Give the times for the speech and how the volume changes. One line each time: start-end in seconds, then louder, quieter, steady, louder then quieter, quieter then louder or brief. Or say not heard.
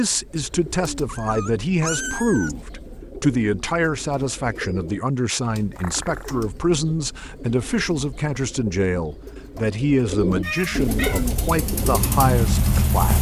0.0-13.1 steady.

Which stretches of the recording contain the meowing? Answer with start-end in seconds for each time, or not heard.
1.1-2.5, 5.8-6.4, 10.4-11.3.